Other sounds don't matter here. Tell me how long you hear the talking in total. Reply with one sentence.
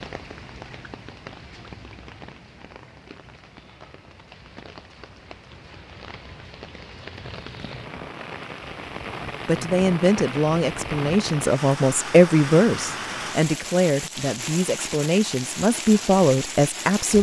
The talking can be heard for 8 seconds in total.